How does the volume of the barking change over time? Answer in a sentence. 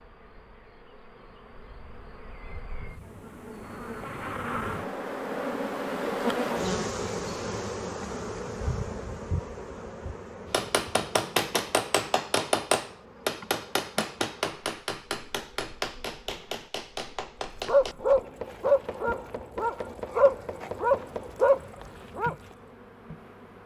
The volume of the barking goes down, then up.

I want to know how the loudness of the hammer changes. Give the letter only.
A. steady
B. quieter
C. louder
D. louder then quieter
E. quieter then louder
B.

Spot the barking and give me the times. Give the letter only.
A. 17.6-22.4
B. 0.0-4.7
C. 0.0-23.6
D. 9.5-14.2
A.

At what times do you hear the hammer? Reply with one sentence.
The hammer can be heard from 10.5 to 21.4 s.